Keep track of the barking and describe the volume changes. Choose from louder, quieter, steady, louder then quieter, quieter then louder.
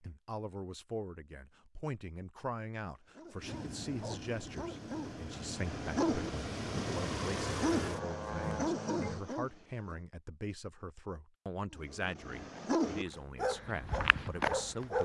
louder.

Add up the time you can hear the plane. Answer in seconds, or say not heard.
6 s.